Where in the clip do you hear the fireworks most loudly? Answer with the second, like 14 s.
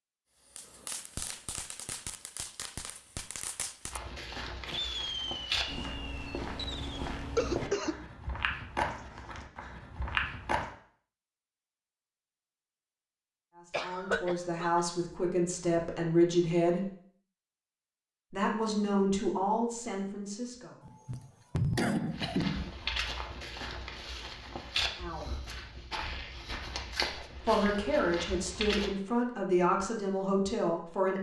5 s.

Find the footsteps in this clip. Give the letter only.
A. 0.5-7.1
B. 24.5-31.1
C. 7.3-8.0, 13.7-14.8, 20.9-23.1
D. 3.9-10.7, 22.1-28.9
D.